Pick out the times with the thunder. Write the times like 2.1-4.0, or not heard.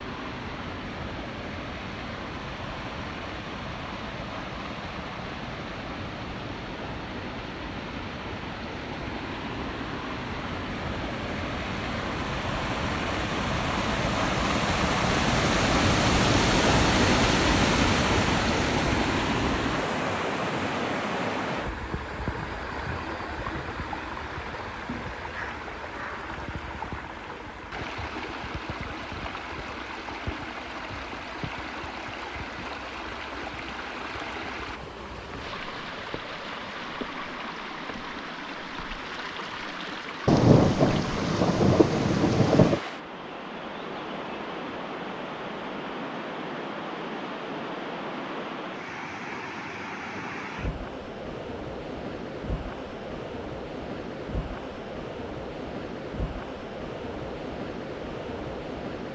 40.2-42.8.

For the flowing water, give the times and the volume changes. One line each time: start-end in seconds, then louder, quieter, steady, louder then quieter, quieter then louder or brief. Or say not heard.
0.0-59.1 louder then quieter.